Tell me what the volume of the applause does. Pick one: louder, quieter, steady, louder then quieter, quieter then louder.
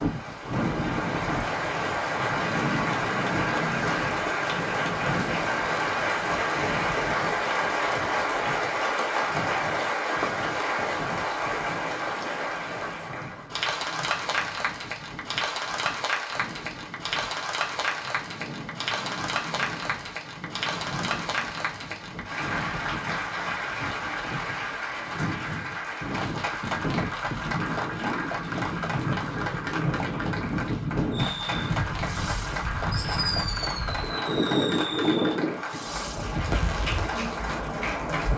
quieter.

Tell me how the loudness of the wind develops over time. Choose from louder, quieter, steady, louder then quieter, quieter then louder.
quieter then louder.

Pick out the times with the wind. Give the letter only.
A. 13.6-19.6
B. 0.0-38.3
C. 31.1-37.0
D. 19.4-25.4
B.